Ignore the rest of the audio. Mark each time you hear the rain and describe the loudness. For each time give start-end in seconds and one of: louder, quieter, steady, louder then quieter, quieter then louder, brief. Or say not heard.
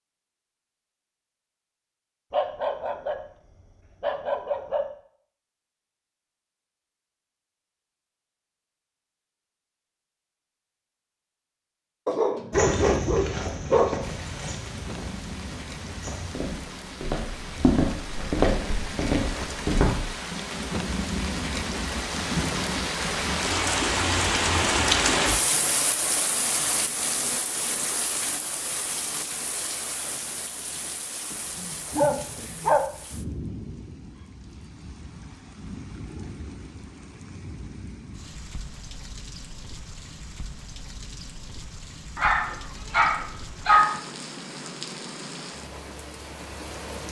14.0-47.0 louder then quieter.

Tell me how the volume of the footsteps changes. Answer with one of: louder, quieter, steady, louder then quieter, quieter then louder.
quieter then louder.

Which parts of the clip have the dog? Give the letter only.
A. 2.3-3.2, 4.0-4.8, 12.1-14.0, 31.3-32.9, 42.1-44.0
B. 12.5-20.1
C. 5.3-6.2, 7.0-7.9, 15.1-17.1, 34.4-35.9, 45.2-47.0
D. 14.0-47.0
A.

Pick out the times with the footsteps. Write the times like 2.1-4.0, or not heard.
12.5-20.1.